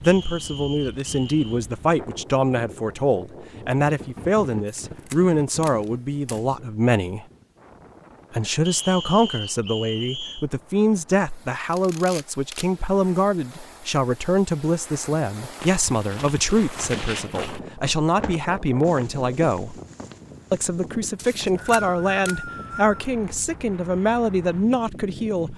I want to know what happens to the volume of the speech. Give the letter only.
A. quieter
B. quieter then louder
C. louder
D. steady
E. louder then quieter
D.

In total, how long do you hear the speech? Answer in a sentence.
You can hear the speech for 24 seconds altogether.